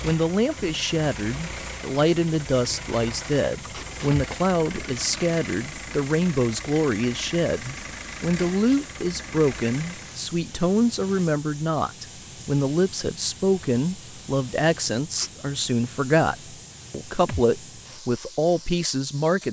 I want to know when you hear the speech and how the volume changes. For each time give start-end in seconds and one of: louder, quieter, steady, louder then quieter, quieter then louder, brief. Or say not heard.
0.0-19.4 steady.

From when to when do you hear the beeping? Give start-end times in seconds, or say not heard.
not heard.